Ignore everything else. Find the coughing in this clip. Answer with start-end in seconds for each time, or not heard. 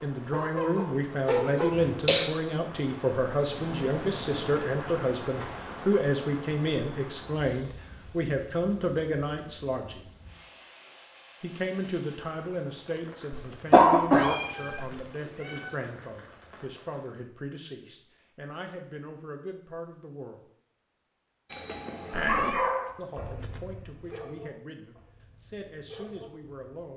1.3-2.3, 13.3-14.9, 21.5-22.6.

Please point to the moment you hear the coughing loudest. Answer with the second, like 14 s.
14 s.